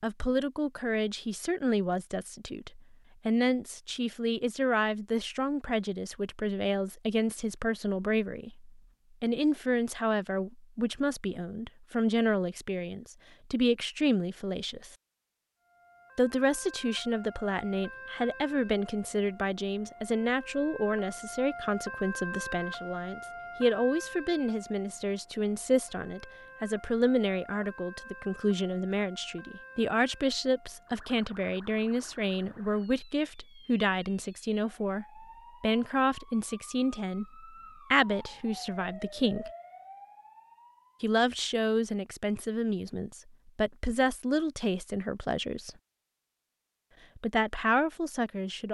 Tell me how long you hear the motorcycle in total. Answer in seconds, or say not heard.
not heard.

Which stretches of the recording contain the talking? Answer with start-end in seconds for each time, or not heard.
0.0-14.9, 16.1-39.5, 41.0-45.7, 47.1-48.6.